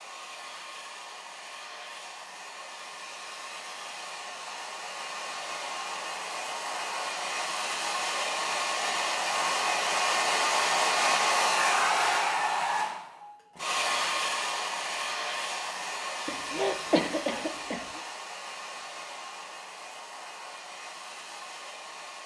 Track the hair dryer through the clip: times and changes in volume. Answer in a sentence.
The hair dryer can be heard from 0.0 to 22.2 s, getting louder then quieter.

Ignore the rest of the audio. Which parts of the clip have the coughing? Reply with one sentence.
The coughing can be heard from 16.2 to 18.0 s.